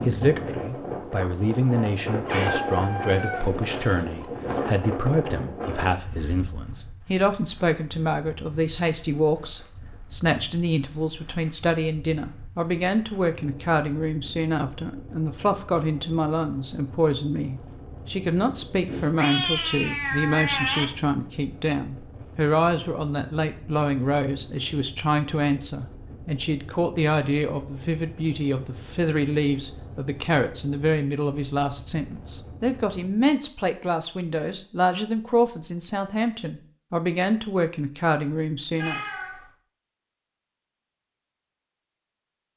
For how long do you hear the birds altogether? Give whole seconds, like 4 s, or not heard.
not heard.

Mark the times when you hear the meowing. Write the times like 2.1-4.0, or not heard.
2.2-4.2, 18.9-20.9, 38.8-39.5.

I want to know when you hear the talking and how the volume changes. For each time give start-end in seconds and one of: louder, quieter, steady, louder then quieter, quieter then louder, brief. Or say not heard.
0.1-39.0 steady.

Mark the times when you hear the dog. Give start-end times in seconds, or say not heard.
not heard.